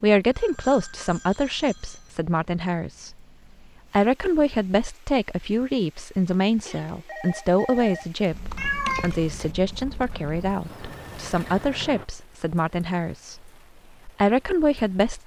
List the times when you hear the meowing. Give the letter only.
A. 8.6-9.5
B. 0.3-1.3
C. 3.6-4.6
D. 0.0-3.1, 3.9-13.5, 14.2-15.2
A.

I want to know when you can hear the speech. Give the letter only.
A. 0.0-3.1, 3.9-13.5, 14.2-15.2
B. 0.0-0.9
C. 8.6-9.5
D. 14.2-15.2
A.